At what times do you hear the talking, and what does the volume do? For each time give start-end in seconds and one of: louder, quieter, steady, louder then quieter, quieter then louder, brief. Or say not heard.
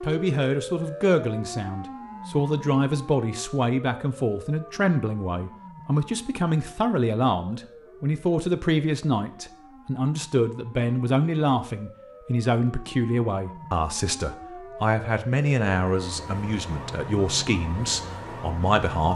0.0-19.1 steady.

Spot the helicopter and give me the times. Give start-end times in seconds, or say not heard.
not heard.